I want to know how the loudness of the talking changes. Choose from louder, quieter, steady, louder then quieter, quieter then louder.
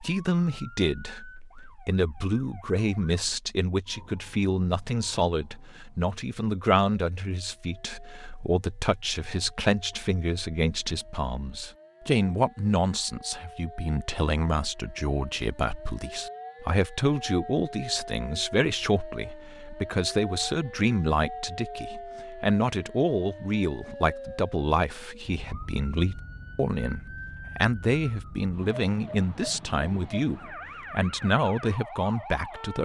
steady.